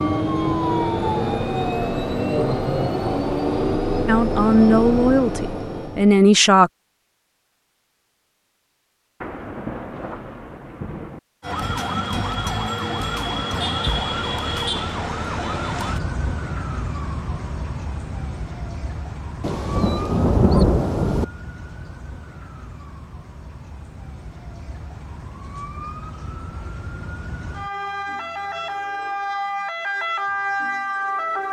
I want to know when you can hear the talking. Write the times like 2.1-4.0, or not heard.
4.0-6.7.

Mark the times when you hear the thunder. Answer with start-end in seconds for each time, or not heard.
9.2-11.2, 19.4-21.2.